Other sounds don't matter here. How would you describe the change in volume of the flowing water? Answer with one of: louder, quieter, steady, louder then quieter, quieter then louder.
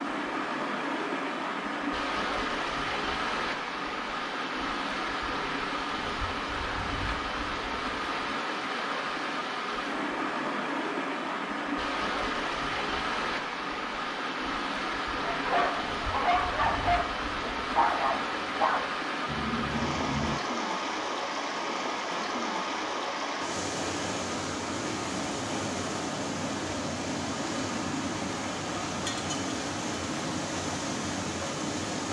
steady.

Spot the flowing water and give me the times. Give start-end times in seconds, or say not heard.
0.0-32.0.